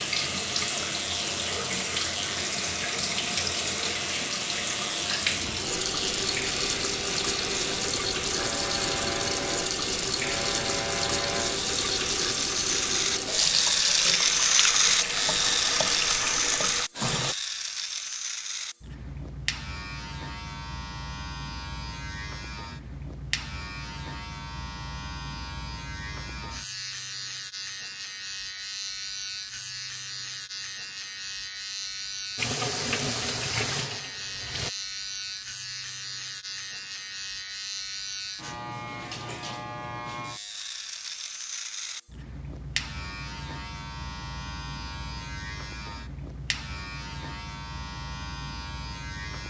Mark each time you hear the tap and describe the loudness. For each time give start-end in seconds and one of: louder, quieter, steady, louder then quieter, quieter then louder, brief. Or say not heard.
0.0-17.4 steady
32.4-34.7 brief.